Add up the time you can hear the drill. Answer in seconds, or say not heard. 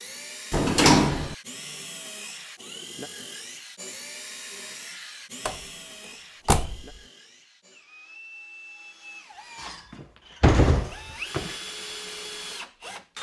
13 s.